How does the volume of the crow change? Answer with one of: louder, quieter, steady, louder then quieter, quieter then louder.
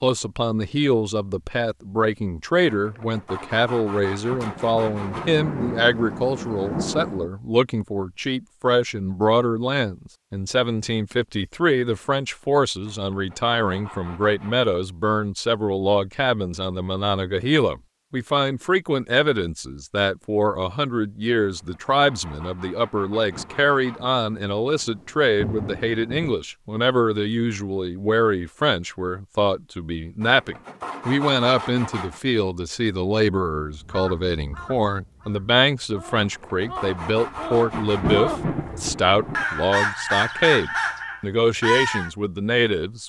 louder.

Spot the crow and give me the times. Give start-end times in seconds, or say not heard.
33.8-42.1.